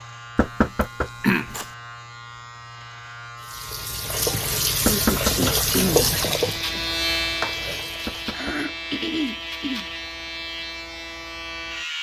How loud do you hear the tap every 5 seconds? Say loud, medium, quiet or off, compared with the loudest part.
loud, loud, off.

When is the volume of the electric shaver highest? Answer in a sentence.
The volume of the electric shaver peaks at 7 seconds.